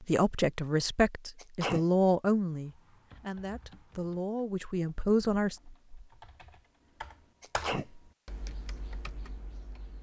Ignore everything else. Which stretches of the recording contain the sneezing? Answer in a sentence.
You can hear the sneezing from 1.4 to 1.9 s and from 7.4 to 7.8 s.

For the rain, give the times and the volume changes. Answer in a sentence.
The rain can't be heard in this clip.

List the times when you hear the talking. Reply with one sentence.
You can hear the talking from 0.0 to 5.5 s.